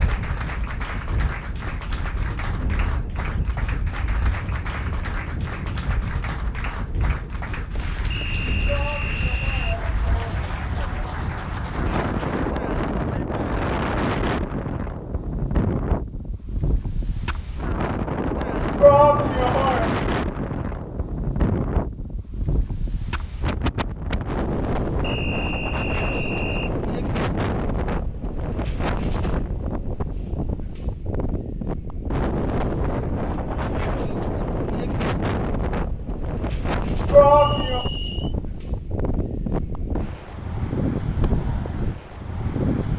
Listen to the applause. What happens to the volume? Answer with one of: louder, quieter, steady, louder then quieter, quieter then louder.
steady.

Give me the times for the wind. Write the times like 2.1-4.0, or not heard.
0.0-42.9.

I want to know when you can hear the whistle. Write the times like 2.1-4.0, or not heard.
8.1-9.8, 25.0-26.8, 37.4-38.4.